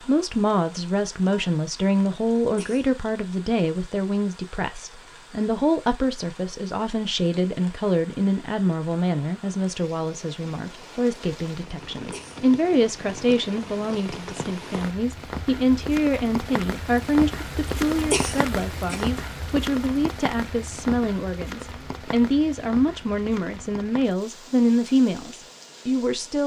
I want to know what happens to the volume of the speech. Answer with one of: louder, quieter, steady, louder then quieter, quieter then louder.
steady.